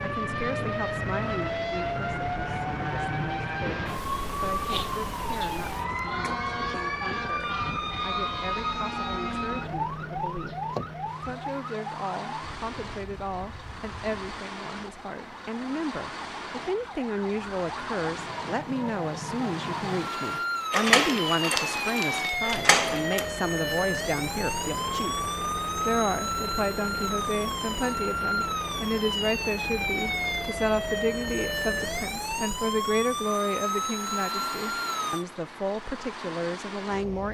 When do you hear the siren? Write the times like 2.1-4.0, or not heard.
0.0-35.2.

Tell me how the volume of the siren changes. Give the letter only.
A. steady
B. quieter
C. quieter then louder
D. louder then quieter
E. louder
C.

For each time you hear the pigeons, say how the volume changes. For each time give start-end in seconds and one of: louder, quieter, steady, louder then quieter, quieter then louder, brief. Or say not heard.
not heard.